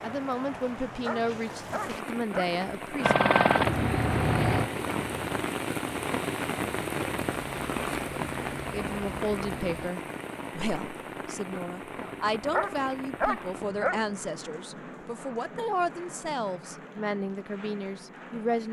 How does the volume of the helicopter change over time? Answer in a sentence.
The volume of the helicopter goes down.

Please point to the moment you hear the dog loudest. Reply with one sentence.
The volume of the dog peaks at 13 seconds.